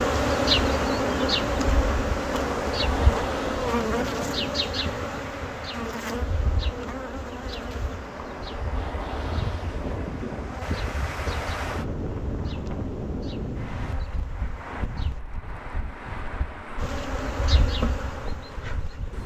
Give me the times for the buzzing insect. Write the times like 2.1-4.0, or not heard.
0.0-15.2, 16.8-19.2.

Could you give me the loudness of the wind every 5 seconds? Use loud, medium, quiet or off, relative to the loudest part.
loud, medium, loud, medium.